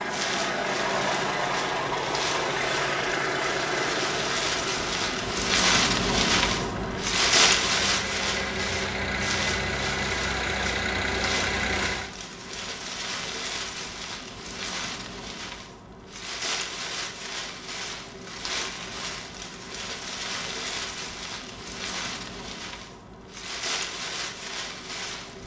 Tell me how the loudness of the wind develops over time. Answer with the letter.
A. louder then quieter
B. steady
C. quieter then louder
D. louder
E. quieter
A.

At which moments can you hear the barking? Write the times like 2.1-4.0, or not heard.
not heard.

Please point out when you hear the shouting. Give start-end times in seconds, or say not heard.
not heard.